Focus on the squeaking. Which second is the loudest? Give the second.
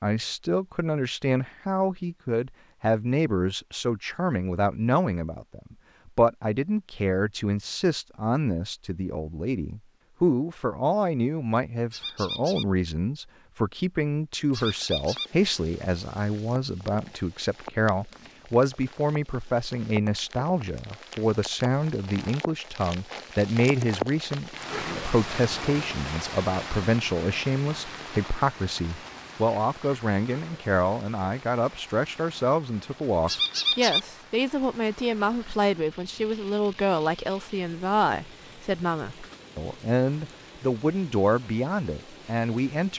34 s.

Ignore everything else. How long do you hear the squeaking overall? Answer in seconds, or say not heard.
2 s.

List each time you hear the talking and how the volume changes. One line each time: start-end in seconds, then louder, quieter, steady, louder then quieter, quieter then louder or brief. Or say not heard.
0.0-42.9 steady.